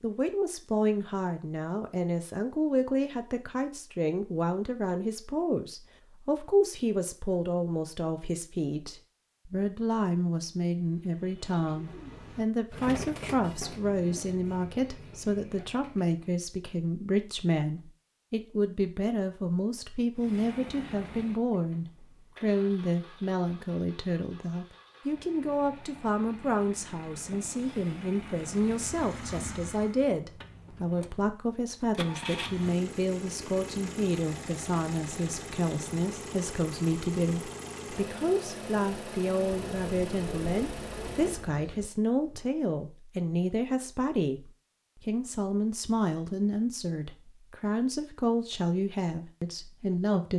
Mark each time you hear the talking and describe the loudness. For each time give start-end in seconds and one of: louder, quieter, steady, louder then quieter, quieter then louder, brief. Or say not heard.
0.0-50.3 steady.